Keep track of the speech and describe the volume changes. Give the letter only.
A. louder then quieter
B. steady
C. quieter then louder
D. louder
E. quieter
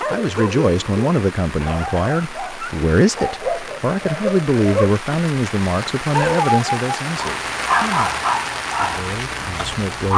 E.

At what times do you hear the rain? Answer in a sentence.
The rain can be heard from 0.0 to 10.1 s.